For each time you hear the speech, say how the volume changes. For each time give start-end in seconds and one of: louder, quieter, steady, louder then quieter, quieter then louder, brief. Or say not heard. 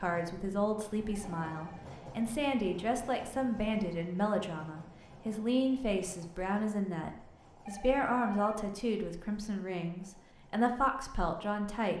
0.0-11.9 steady.